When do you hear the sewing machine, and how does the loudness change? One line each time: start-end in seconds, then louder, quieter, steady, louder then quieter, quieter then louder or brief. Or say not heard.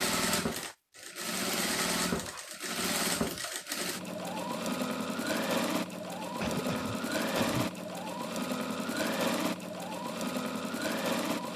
0.0-11.5 steady.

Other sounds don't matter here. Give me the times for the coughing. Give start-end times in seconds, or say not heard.
6.4-7.7.